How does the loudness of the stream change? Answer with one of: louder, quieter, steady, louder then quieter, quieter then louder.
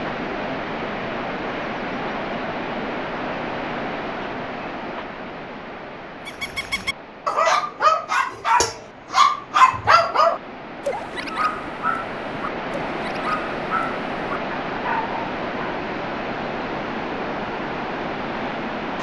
quieter then louder.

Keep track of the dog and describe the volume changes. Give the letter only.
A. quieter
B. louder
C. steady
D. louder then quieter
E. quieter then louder
A.